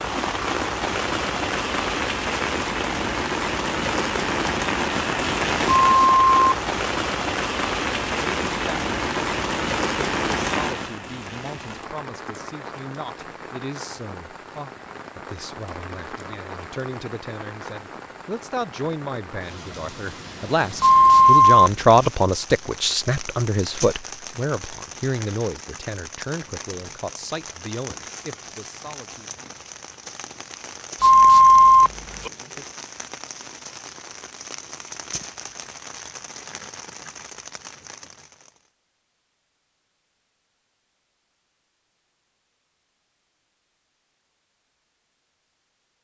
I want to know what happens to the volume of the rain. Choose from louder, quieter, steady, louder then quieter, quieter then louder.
quieter.